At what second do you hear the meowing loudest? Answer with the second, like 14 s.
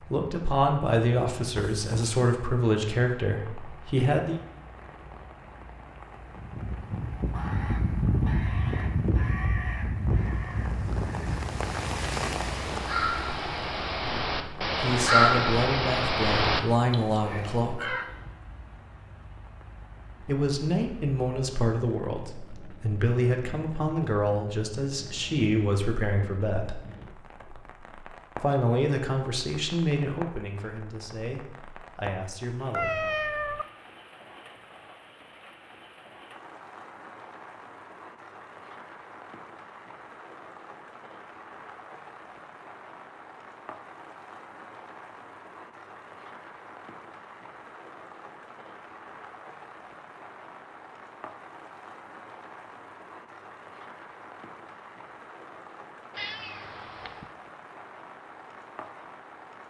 33 s.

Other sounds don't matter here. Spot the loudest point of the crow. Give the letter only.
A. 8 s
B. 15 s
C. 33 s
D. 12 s
B.